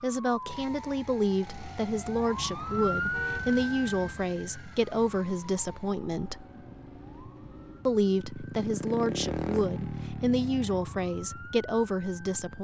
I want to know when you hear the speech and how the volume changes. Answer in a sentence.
The speech can be heard from 0.0 to 6.5 s, at a steady volume; and from 7.8 to 12.5 s, at a steady volume.